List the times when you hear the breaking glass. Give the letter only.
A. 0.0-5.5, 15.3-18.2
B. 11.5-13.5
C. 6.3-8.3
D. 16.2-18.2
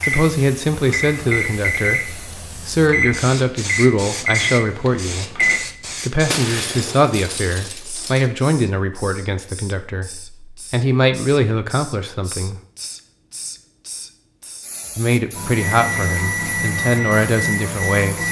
C.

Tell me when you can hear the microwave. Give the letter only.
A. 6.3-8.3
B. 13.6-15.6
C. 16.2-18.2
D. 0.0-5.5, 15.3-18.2
D.